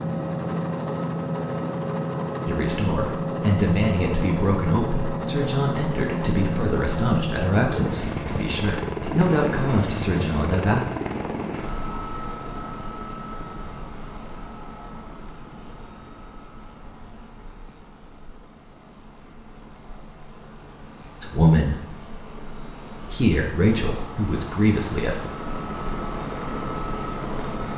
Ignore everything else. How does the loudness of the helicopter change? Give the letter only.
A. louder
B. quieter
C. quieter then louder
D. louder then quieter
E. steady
C.